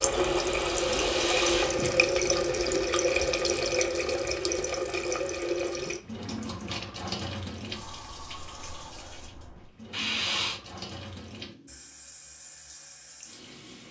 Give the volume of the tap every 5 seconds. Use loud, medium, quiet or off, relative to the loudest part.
loud, medium, quiet.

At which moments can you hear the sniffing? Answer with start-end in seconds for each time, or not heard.
0.2-2.6, 9.9-10.6.